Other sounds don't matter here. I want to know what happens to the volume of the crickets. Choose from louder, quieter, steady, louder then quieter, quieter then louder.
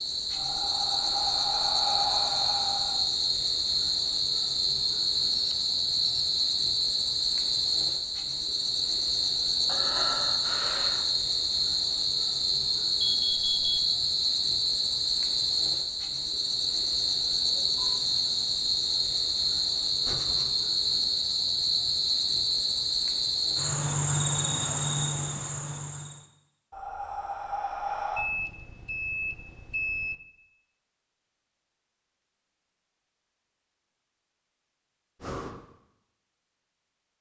steady.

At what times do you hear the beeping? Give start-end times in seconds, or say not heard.
5.3-6.2, 13.0-13.8, 28.1-30.1.